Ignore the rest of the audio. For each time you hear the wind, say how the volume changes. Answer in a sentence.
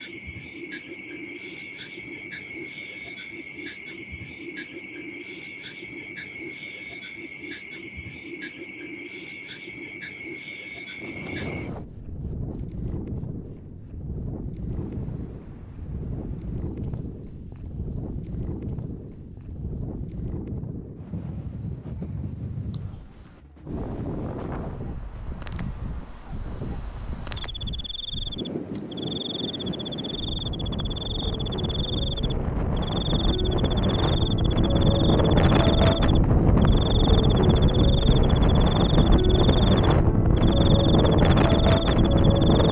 You can hear the wind from 10.9 to 42.6 s, getting louder.